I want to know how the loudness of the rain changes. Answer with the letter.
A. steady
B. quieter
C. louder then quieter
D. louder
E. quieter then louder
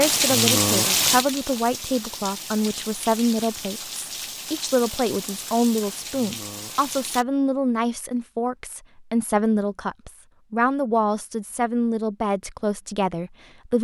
B.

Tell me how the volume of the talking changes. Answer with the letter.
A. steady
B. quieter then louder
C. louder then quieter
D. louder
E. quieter
A.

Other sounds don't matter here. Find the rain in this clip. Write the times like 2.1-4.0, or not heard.
0.0-7.2.